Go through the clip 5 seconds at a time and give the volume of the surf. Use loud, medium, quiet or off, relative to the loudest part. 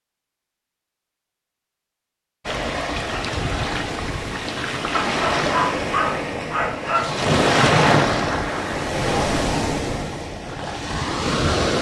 medium, loud, loud.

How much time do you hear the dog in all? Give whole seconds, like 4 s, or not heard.
2 s.